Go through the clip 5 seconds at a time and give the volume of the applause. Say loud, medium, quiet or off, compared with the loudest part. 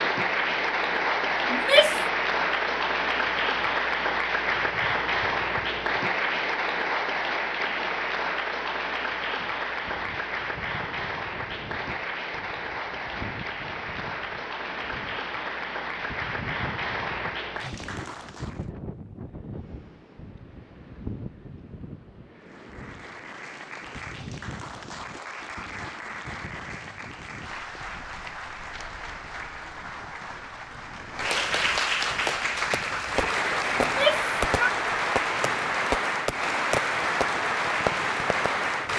loud, loud, medium, medium, quiet, quiet, loud, loud.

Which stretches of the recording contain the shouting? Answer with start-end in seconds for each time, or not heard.
1.5-2.0, 33.8-34.7.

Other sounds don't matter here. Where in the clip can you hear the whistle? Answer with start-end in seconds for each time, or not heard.
not heard.